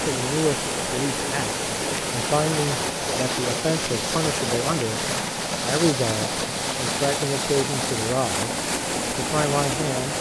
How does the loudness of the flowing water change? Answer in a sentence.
The loudness of the flowing water stays about the same.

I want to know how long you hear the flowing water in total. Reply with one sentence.
The flowing water can be heard for 10 seconds in total.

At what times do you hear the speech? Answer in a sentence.
The speech can be heard from 0.0 to 10.1 s.